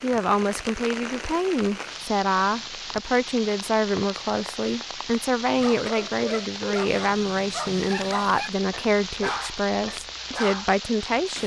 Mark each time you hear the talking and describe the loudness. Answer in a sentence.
The talking can be heard from 0.0 to 11.4 s, at a steady volume.